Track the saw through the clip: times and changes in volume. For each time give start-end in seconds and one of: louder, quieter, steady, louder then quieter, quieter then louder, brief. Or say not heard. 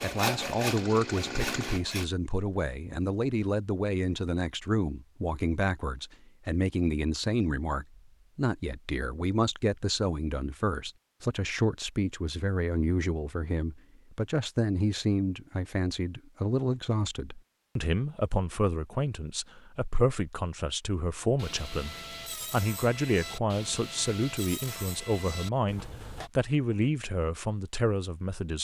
0.0-2.0 brief
21.4-26.3 steady.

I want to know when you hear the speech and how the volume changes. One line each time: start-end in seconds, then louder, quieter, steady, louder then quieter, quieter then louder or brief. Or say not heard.
0.0-28.5 steady.